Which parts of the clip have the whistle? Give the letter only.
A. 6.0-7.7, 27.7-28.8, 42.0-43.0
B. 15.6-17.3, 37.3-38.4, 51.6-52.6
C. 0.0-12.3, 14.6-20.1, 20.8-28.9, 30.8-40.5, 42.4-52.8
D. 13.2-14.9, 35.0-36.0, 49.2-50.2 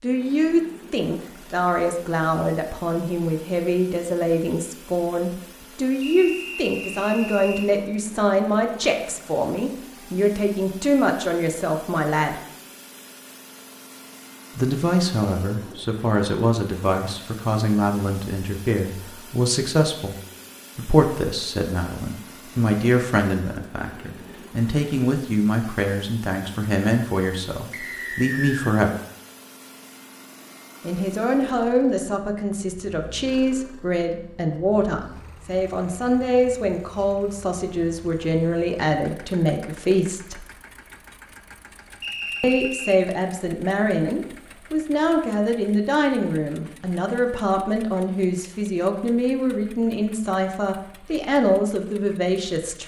A.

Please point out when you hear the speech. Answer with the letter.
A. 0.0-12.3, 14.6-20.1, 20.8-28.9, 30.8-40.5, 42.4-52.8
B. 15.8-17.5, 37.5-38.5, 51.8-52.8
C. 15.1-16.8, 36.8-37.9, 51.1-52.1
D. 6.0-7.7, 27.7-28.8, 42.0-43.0
A.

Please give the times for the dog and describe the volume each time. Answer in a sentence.
You can't hear the dog here.